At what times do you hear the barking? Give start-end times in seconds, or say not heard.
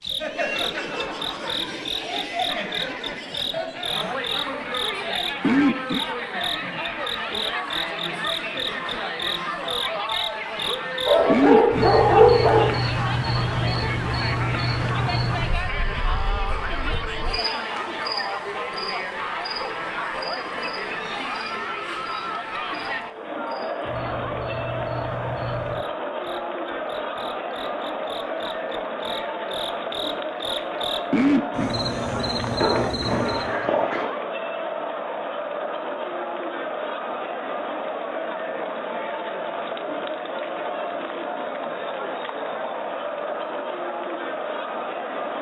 11.1-12.8, 32.6-34.1.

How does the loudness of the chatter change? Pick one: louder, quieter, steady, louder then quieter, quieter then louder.
steady.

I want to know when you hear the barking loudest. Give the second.
12 s.